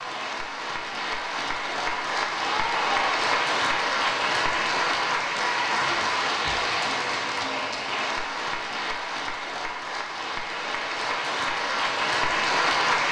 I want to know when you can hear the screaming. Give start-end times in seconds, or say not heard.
2.5-3.2.